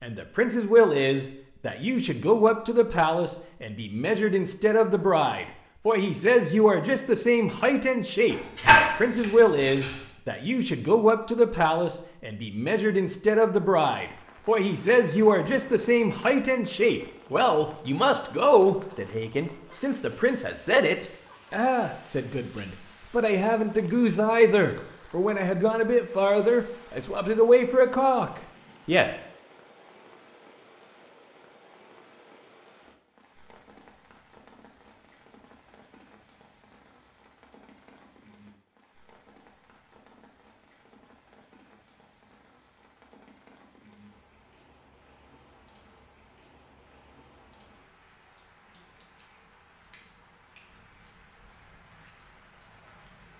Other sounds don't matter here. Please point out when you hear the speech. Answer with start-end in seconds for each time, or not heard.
0.0-29.1.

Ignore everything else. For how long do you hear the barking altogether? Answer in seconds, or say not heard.
2 s.